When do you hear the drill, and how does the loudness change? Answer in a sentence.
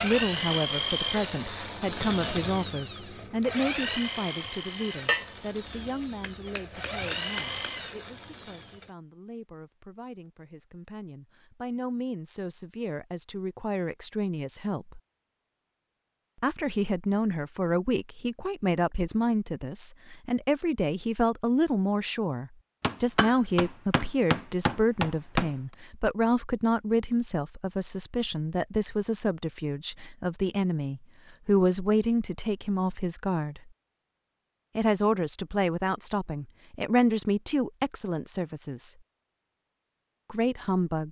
You can hear the drill from 0.0 to 8.9 s, getting quieter then louder.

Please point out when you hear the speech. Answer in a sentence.
The speech can be heard from 0.0 to 15.0 s, from 16.4 to 33.7 s, from 34.8 to 39.0 s and from 40.3 to 41.0 s.